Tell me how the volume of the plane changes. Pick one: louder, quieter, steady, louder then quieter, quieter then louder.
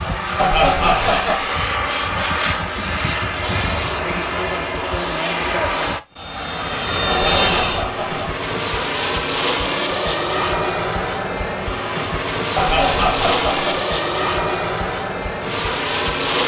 steady.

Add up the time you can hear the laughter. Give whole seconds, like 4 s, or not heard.
4 s.